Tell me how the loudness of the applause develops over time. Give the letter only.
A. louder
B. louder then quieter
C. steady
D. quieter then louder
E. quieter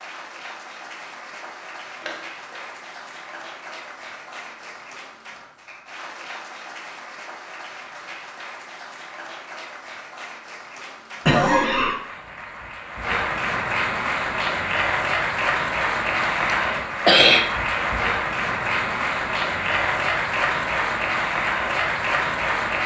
A.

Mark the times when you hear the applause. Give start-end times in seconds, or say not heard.
0.0-22.8.